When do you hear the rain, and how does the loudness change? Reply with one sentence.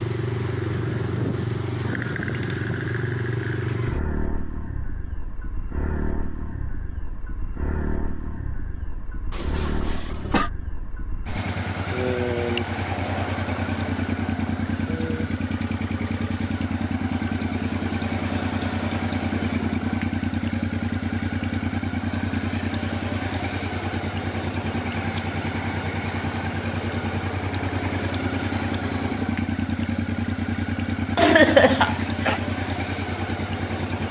You can't hear the rain here.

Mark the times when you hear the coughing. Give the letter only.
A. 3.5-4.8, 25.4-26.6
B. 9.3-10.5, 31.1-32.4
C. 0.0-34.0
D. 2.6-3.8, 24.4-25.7
B.